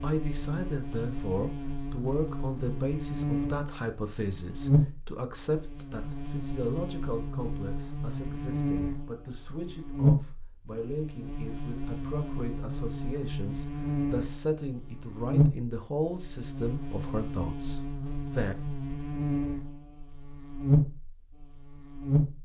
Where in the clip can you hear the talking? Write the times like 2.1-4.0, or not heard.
0.0-18.6.